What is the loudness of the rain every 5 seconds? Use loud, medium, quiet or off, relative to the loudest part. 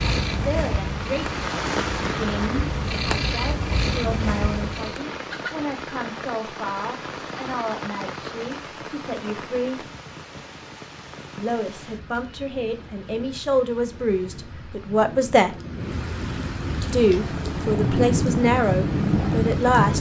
medium, medium, quiet, loud.